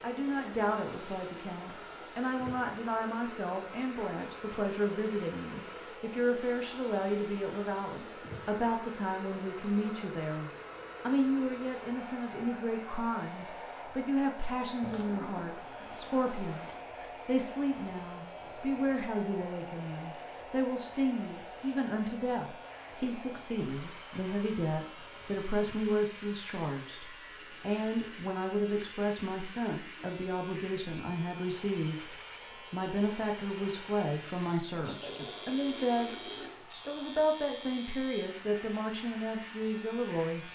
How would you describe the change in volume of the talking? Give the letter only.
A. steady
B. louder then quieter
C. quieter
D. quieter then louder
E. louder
A.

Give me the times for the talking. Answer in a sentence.
The talking can be heard from 0.0 to 36.1 s and from 36.9 to 40.4 s.